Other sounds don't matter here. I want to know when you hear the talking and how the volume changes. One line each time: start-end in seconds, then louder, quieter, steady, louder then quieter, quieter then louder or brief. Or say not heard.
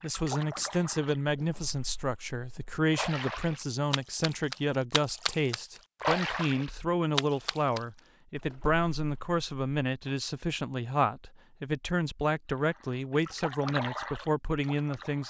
0.0-15.2 steady.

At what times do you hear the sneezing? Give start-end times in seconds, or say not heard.
not heard.